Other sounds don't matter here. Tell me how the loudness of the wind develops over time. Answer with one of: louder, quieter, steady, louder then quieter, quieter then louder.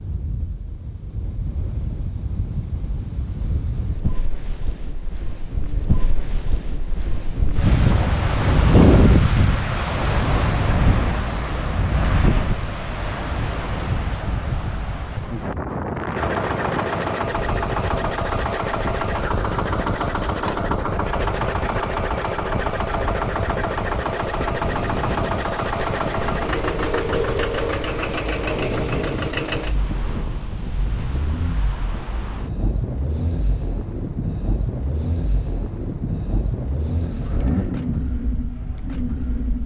louder then quieter.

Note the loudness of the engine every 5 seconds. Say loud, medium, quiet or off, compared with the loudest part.
off, off, off, loud, loud, loud, medium, medium.